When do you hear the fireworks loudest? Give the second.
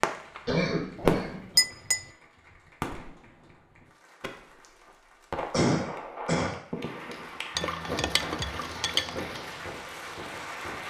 1 s.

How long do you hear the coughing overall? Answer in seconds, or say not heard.
2 s.